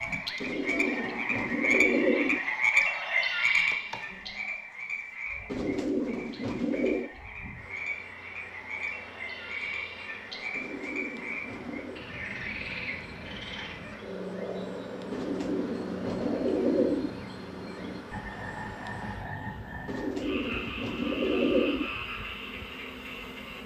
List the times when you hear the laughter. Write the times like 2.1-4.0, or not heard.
not heard.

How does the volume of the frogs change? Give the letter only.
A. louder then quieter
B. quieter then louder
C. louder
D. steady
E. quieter
E.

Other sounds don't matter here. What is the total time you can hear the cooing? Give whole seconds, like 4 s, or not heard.
9 s.